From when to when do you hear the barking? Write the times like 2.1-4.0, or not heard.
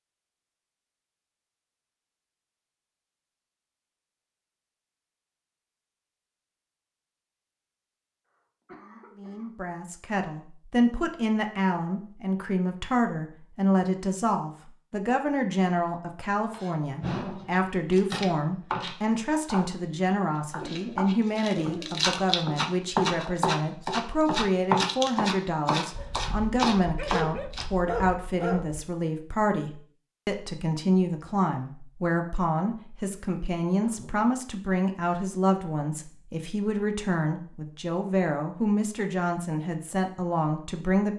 25.9-28.9.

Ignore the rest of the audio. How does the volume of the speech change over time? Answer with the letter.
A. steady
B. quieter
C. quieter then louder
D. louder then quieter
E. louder
A.